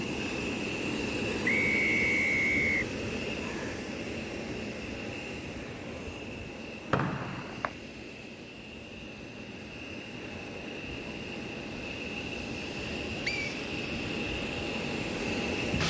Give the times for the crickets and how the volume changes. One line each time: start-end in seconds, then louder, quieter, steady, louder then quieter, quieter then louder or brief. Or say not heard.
0.0-15.8 quieter then louder.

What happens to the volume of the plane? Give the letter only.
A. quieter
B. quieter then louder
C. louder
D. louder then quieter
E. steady
B.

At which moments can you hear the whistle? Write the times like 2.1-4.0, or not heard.
1.4-2.9, 6.9-7.7, 13.2-13.7.